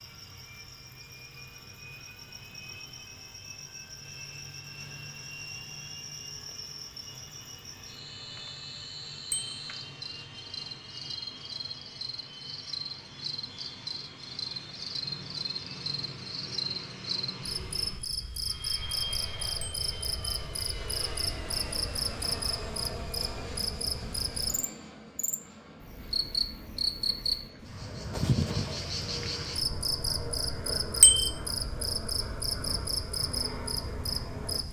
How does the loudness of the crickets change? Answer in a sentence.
The volume of the crickets goes up.